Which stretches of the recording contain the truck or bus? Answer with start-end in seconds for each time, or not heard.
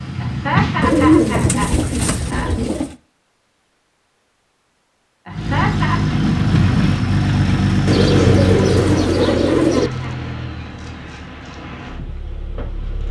0.0-2.5, 5.3-13.0.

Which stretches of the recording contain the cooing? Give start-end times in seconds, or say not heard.
0.8-3.0, 7.8-9.9.